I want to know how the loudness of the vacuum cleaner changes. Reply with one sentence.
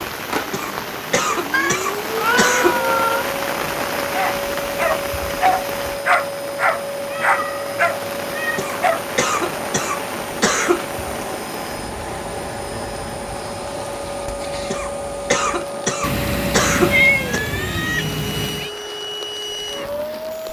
The loudness of the vacuum cleaner stays about the same.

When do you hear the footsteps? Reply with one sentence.
You can't hear the footsteps here.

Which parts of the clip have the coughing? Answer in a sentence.
You can hear the coughing from 0.5 to 2.8 s, from 8.6 to 11.2 s and from 14.7 to 17.4 s.